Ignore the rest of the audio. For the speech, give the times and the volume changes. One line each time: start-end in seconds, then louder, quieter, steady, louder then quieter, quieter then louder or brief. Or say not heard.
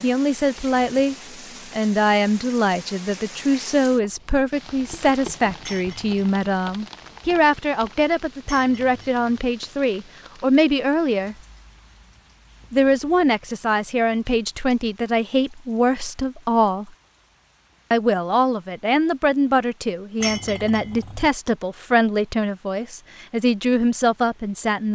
0.0-11.3 steady
12.7-16.9 steady
17.9-24.8 steady.